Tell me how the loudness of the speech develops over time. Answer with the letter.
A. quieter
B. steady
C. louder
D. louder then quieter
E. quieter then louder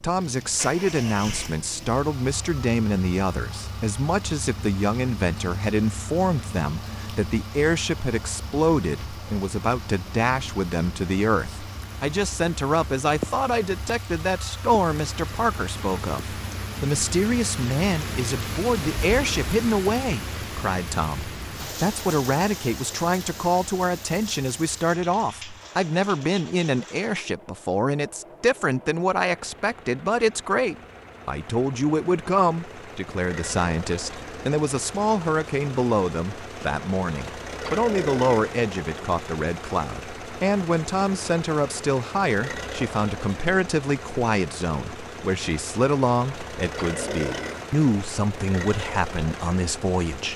B.